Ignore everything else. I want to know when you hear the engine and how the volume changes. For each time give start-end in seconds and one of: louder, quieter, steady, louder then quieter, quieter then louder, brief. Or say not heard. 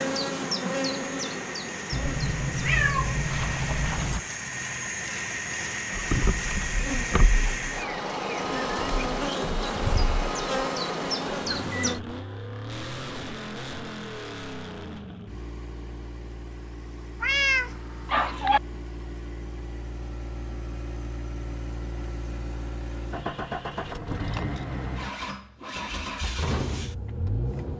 0.0-27.7 quieter then louder.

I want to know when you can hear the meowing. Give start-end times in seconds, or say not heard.
1.9-4.2, 17.2-18.6.